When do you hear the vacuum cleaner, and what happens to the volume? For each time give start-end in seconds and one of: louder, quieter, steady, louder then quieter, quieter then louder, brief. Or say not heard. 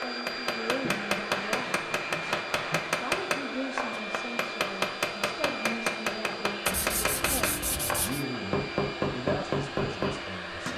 0.0-10.7 steady.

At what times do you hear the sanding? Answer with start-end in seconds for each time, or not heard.
0.8-3.0, 6.7-8.2.